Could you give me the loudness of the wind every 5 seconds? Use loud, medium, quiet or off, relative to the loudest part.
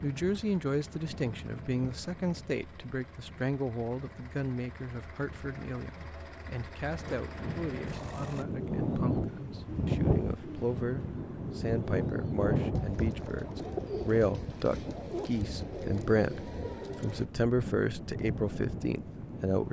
quiet, loud, loud, medium.